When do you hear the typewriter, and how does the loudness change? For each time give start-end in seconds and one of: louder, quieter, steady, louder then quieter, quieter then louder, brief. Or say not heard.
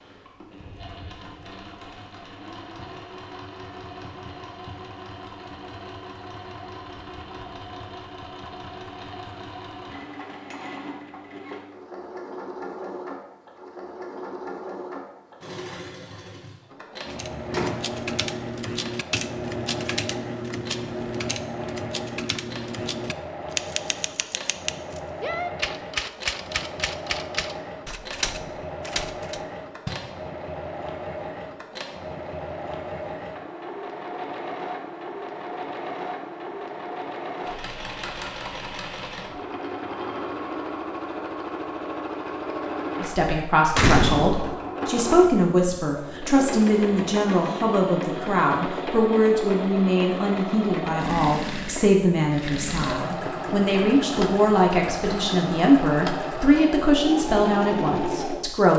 17.1-29.4 steady.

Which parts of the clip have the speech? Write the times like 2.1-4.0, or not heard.
43.0-58.7.